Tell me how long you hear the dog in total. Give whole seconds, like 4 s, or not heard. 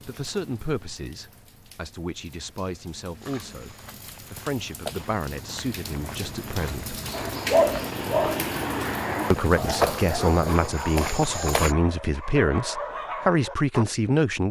7 s.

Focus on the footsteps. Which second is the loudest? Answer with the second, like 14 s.
10 s.